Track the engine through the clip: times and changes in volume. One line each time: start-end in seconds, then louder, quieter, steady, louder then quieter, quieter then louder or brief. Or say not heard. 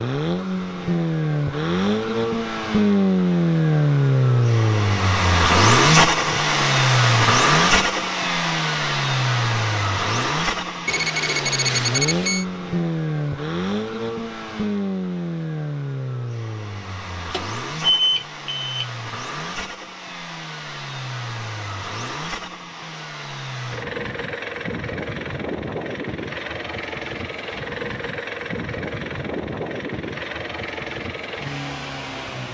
0.0-32.4 quieter.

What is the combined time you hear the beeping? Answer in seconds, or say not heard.
3 s.